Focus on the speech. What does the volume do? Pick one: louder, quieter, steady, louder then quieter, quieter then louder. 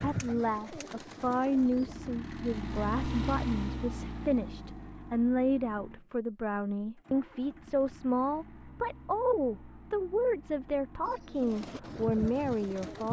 steady.